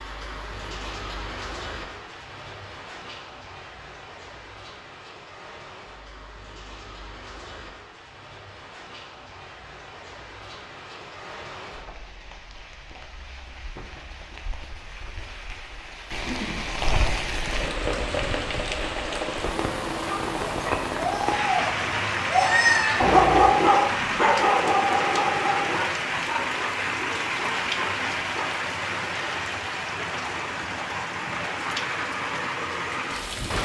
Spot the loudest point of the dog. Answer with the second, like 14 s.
23 s.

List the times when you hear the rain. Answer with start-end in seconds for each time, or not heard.
0.0-33.6.